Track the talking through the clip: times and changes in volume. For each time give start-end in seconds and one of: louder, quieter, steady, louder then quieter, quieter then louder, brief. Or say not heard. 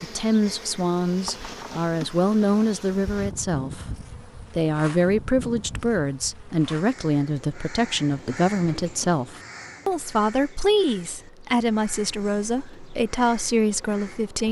0.0-14.4 steady.